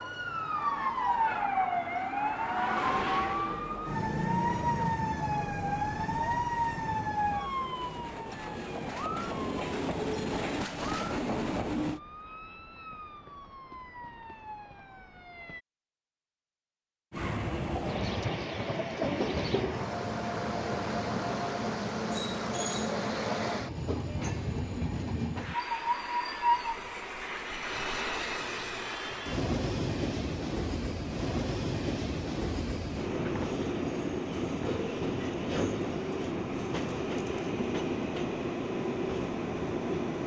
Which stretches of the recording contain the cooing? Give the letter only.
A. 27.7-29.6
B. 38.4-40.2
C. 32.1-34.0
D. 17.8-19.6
D.